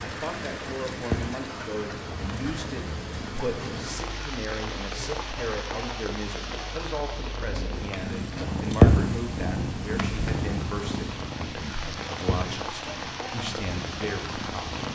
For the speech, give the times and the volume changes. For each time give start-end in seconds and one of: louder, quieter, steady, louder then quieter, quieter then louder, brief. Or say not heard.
0.0-14.8 steady.